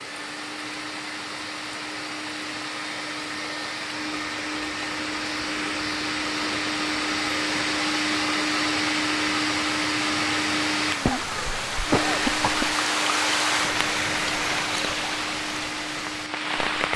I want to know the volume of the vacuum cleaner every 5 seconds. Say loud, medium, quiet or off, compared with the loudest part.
medium, loud, loud, medium.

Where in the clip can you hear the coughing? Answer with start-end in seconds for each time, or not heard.
11.1-12.8.